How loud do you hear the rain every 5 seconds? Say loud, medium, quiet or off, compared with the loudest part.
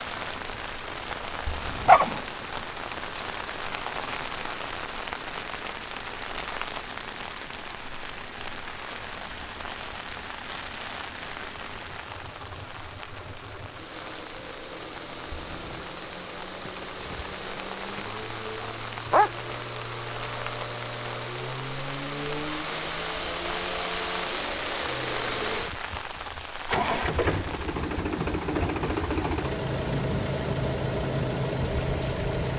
loud, loud, medium, medium, loud, loud, loud.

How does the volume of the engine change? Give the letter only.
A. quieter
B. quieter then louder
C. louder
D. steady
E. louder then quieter
C.